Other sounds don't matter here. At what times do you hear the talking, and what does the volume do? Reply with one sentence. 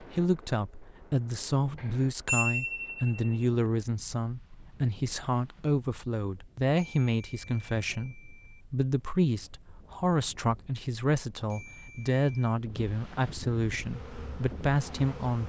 You can hear the talking from 0.0 to 15.4 s, at a steady volume.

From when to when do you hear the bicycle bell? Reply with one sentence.
You can hear the bicycle bell from 1.8 to 3.4 s, from 6.8 to 8.6 s and from 11.5 to 12.6 s.